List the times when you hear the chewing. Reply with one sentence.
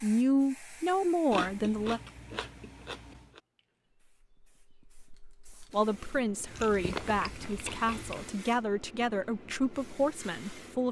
You can hear the chewing from 1.3 to 3.4 s and from 6.5 to 8.3 s.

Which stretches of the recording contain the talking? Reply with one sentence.
You can hear the talking from 0.0 to 2.0 s and from 5.7 to 10.8 s.